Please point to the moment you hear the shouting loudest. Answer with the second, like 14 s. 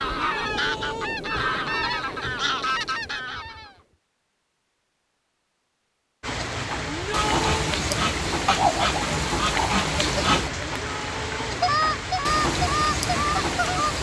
7 s.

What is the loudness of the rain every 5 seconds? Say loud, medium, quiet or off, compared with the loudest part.
off, loud, loud.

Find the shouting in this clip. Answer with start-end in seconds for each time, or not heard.
0.2-1.2, 6.8-7.7, 10.7-11.5.